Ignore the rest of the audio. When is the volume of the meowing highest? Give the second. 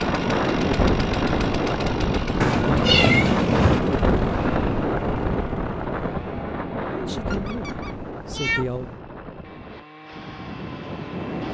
3 s.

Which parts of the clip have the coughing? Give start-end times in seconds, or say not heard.
not heard.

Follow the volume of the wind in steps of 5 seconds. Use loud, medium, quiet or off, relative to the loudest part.
loud, medium, medium.